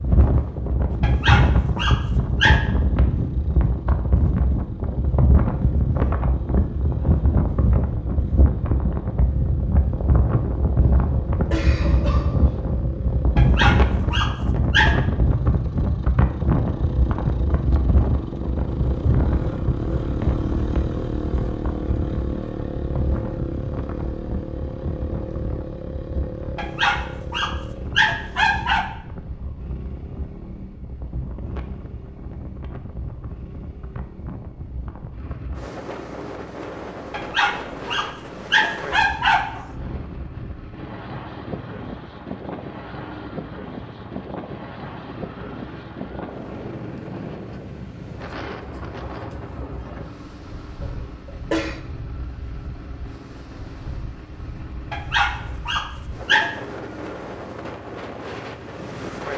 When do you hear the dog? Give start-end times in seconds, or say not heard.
1.0-2.6, 13.3-14.9, 26.6-28.9, 37.1-39.6, 54.9-56.5.